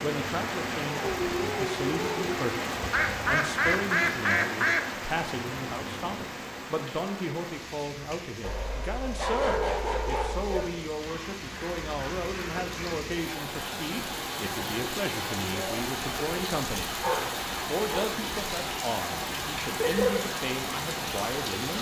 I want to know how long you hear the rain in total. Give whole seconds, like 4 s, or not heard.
22 s.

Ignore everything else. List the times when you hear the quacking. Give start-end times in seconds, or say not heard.
2.9-4.8, 10.9-13.0, 19.1-20.2.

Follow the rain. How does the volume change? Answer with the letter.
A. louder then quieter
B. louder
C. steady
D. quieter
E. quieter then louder
E.